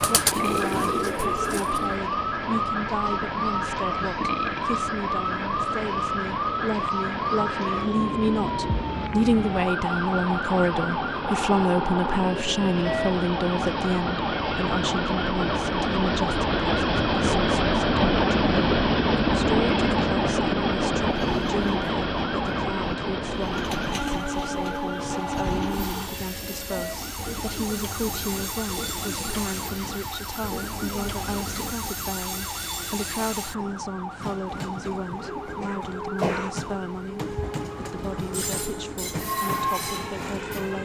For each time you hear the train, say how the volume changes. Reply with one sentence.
You can hear the train from 0.0 to 40.7 s, getting louder then quieter.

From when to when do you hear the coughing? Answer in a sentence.
The coughing can be heard from 35.2 to 36.5 s.